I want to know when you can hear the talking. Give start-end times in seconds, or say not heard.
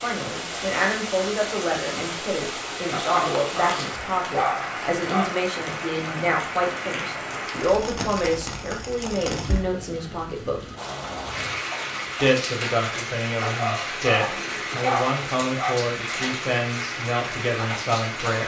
0.0-10.6, 12.2-18.4.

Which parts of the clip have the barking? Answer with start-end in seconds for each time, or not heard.
2.9-5.3, 13.4-15.8.